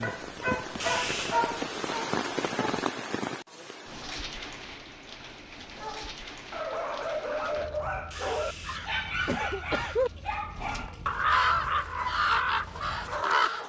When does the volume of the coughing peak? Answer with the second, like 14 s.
10 s.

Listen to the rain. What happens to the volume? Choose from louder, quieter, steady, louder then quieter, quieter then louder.
quieter.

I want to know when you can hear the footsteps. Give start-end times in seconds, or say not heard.
not heard.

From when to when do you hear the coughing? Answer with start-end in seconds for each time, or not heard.
0.8-1.4, 8.1-10.1.